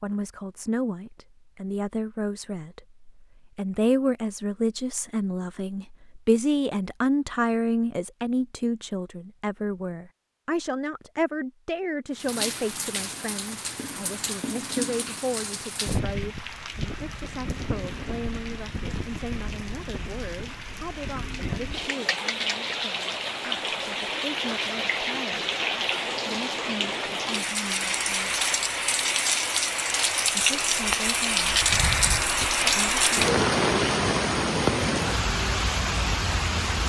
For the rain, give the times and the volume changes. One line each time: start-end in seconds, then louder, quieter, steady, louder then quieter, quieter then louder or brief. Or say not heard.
12.2-36.8 louder.